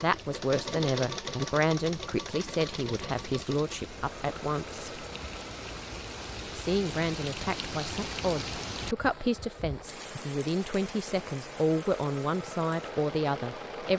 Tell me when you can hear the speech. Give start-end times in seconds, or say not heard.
0.0-5.0, 6.5-13.9.